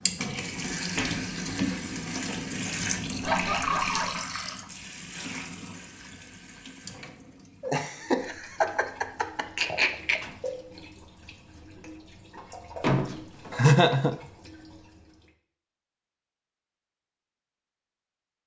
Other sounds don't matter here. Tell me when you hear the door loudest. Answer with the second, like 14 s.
13 s.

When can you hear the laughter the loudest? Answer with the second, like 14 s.
14 s.